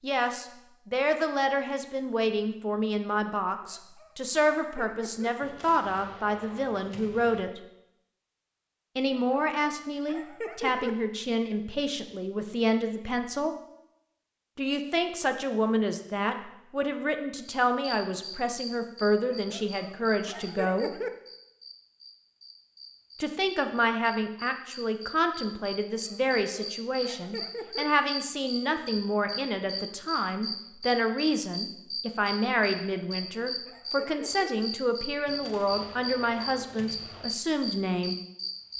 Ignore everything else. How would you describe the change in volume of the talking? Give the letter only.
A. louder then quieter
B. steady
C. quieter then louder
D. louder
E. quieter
B.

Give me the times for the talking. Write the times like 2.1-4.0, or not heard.
0.0-7.6, 8.9-13.6, 14.6-20.9, 23.2-38.1.